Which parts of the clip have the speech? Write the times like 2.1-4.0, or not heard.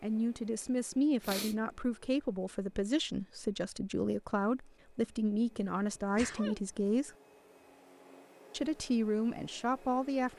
0.0-7.1, 8.5-10.3.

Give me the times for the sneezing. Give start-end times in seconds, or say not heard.
1.2-1.6, 6.0-6.6.